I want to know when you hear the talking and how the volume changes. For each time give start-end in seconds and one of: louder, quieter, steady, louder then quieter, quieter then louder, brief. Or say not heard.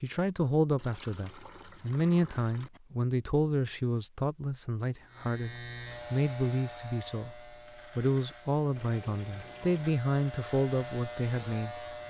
0.0-12.0 steady.